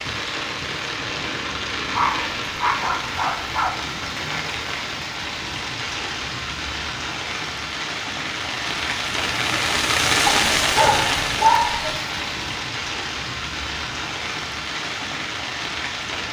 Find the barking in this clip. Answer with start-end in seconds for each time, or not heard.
1.9-3.7, 10.2-11.9.